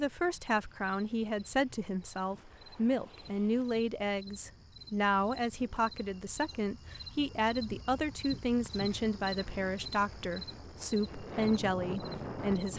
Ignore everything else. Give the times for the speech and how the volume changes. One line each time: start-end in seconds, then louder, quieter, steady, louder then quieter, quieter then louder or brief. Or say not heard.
0.0-12.7 steady.